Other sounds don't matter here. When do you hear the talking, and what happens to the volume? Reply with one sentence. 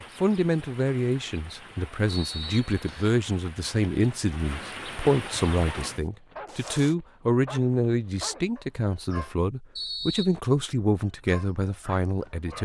You can hear the talking from 0.1 to 12.6 s, at a steady volume.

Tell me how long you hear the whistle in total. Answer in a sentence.
The whistle can be heard for 2 seconds in total.